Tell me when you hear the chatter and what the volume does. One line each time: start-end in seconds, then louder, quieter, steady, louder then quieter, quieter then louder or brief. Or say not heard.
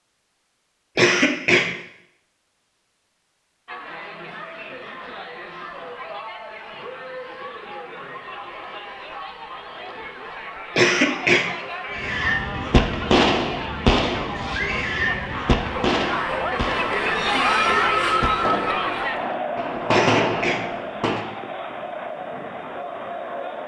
3.6-23.6 louder then quieter.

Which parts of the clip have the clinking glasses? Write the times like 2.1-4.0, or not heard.
not heard.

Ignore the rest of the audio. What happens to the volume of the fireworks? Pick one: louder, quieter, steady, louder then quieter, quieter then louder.
quieter then louder.